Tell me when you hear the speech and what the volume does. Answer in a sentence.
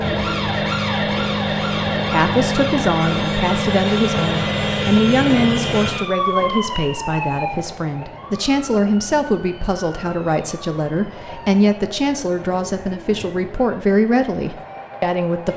You can hear the speech from 2.1 to 15.5 s, at a steady volume.